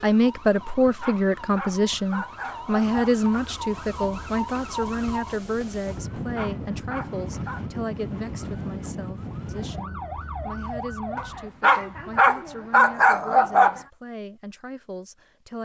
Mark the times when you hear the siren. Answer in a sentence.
The siren can be heard from 0.0 to 11.5 s.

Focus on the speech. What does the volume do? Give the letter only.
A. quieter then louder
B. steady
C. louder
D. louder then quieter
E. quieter
E.